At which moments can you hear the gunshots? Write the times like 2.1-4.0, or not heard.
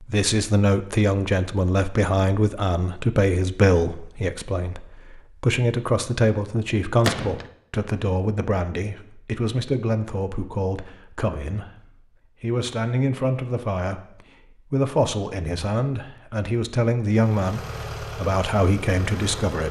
7.0-7.5.